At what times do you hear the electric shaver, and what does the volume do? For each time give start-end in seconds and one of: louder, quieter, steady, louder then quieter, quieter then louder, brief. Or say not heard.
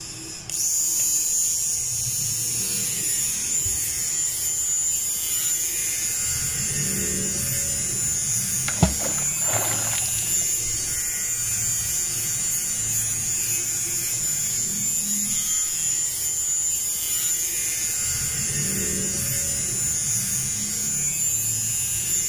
0.0-22.2 steady.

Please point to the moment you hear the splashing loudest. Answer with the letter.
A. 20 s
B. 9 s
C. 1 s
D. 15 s
B.